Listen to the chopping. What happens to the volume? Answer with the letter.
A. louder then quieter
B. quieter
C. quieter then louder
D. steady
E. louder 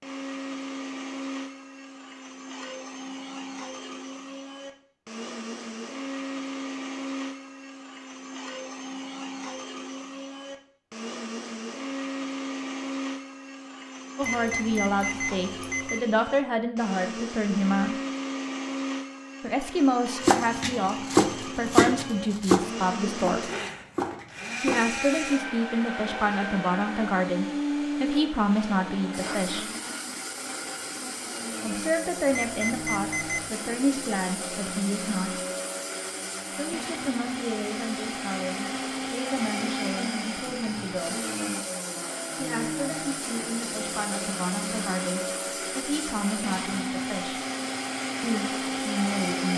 B.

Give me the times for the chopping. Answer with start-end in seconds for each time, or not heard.
20.2-25.4.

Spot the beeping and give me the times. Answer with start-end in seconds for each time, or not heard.
14.2-16.1, 32.3-33.5.